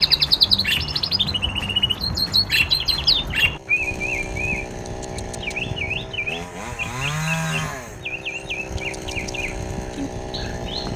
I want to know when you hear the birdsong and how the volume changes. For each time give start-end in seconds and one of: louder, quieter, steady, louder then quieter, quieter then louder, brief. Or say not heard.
0.0-10.9 quieter.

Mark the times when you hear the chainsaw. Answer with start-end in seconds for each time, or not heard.
0.0-10.9.